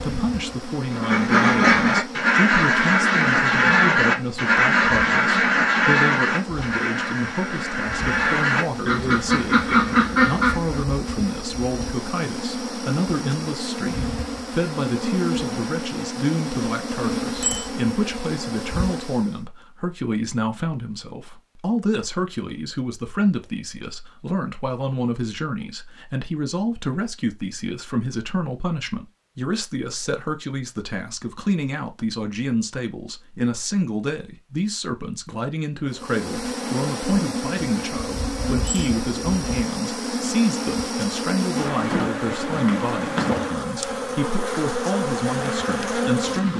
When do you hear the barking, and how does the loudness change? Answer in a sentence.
You can't hear the barking here.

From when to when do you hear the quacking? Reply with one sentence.
You can hear the quacking from 0.9 to 10.8 s.